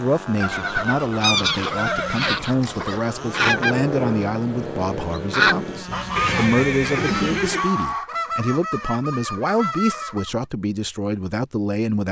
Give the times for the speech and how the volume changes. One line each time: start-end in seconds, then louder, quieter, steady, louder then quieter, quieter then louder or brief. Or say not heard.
0.0-12.0 steady.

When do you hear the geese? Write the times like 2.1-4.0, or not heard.
0.6-10.4.